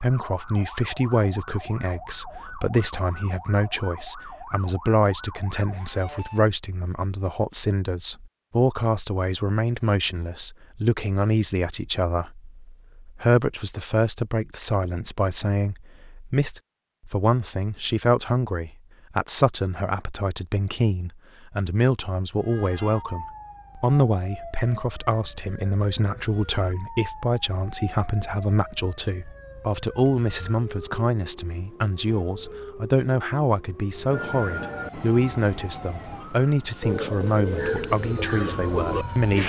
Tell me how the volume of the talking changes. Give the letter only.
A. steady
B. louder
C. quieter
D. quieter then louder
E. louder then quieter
A.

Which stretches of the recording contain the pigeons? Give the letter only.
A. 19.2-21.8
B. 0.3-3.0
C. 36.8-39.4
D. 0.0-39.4
C.